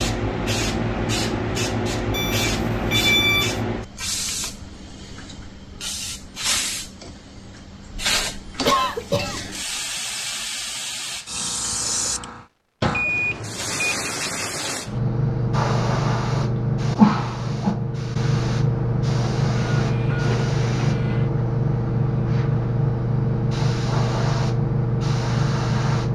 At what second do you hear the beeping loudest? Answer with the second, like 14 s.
3 s.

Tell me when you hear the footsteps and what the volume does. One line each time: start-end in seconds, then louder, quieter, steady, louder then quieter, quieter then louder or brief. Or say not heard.
not heard.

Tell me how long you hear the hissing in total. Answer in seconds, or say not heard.
26 s.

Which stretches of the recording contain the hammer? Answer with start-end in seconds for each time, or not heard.
not heard.